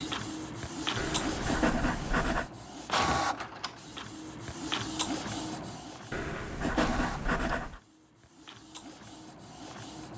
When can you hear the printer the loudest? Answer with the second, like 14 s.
3 s.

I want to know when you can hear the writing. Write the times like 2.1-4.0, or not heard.
0.9-2.5, 6.1-7.8.